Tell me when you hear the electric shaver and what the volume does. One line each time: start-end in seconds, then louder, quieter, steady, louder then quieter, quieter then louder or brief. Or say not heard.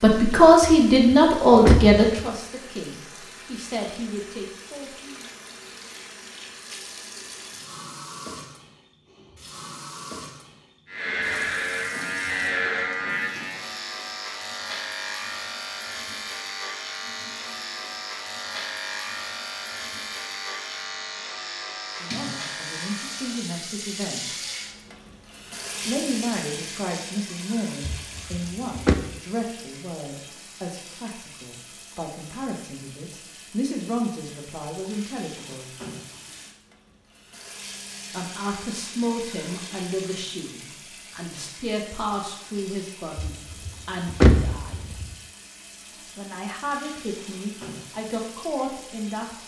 10.8-23.5 quieter.